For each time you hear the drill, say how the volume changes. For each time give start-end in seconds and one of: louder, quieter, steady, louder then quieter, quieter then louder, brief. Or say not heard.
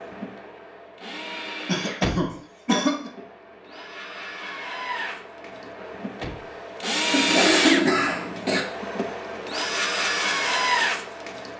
0.0-11.5 louder.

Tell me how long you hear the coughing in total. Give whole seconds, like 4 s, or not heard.
3 s.